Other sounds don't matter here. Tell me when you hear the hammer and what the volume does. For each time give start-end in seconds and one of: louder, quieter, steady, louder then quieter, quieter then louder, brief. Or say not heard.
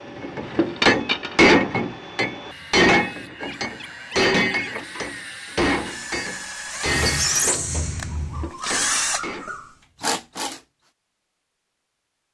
0.2-9.5 quieter.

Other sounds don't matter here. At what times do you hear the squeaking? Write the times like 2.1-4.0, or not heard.
6.8-8.5.